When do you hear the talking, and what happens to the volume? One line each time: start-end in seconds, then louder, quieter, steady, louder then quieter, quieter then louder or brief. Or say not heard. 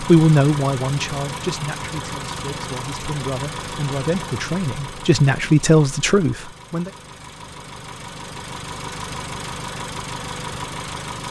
0.0-6.9 quieter then louder.